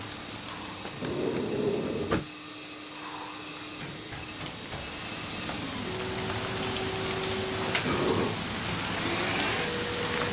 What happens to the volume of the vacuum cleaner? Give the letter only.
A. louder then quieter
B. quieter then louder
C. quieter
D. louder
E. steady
D.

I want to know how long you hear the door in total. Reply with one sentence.
You can hear the door for 2 seconds altogether.